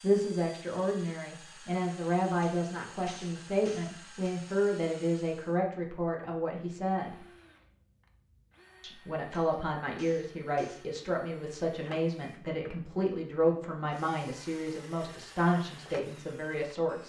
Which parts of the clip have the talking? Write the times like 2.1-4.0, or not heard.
0.0-7.2, 8.8-17.0.